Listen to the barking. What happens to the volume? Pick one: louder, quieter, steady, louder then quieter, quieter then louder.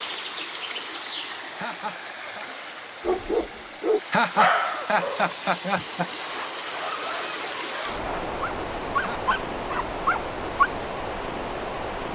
quieter then louder.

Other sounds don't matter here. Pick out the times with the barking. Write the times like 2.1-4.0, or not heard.
3.0-10.7.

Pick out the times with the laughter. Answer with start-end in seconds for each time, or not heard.
1.6-2.5, 4.1-6.1, 9.0-9.6.